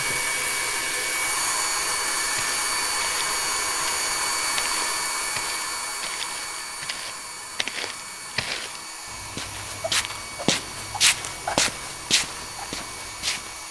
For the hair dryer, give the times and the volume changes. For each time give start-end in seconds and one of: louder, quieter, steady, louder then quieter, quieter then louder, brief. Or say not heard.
0.0-13.6 quieter.